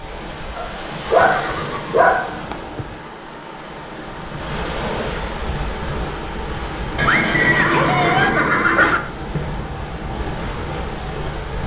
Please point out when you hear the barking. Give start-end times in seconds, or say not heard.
0.6-2.4, 7.0-9.0.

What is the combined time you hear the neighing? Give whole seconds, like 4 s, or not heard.
4 s.